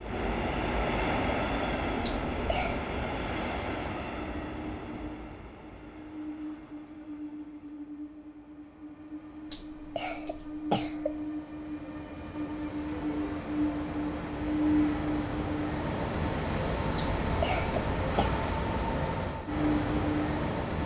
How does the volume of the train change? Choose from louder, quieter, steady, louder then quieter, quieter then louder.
quieter then louder.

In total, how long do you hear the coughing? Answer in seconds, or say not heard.
4 s.